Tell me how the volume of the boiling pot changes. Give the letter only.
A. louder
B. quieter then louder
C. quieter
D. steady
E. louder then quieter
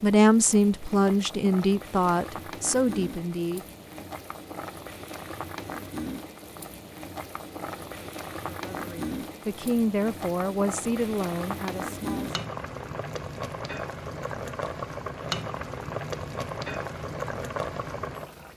A.